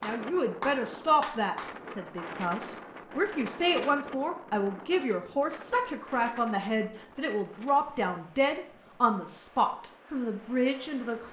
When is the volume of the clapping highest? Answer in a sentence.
The loudest moment of the clapping is at 1 second.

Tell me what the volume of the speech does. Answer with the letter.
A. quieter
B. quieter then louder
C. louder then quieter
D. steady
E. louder
D.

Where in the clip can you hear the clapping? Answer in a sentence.
The clapping can be heard from 0.0 to 2.4 s.